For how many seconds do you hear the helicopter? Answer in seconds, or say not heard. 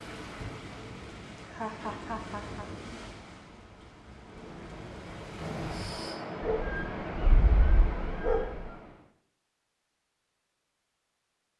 2 s.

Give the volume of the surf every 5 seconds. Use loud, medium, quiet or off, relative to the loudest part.
medium, loud, off.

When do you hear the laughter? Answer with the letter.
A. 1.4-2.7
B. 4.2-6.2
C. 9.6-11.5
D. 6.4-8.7
A.